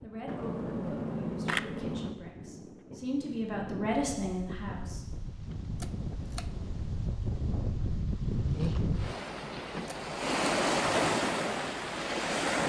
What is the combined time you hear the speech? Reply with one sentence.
The speech can be heard for 5 seconds in total.